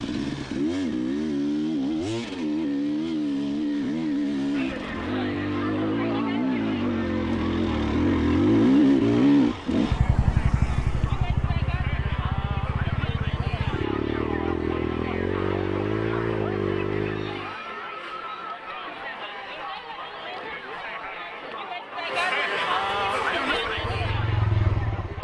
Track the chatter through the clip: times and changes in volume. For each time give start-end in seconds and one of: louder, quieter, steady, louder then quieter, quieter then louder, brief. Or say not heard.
4.5-25.1 louder.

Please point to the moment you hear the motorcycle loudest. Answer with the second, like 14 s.
9 s.